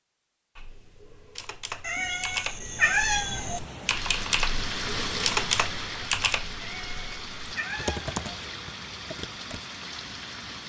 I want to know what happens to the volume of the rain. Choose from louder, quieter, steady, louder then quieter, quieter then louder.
louder then quieter.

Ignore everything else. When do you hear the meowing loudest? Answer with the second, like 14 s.
3 s.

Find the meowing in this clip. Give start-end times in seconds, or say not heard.
1.8-3.6, 6.6-8.2.